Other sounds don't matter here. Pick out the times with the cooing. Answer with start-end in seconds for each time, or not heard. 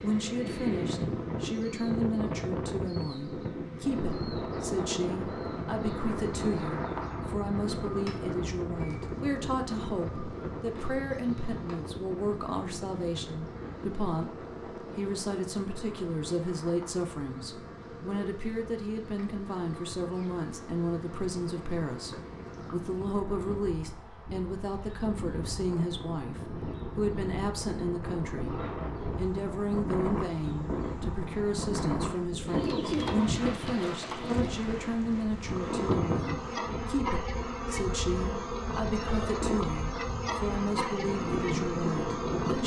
32.5-34.6.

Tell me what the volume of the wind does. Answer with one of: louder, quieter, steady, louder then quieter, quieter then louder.
quieter then louder.